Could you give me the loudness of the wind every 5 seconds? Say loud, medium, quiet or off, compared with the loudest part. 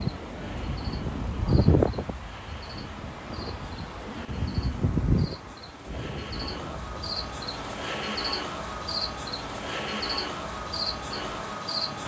loud, medium, quiet.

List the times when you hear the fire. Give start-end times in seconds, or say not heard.
not heard.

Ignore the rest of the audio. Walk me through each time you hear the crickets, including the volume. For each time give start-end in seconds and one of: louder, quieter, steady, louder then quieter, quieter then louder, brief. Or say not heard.
0.0-12.0 louder.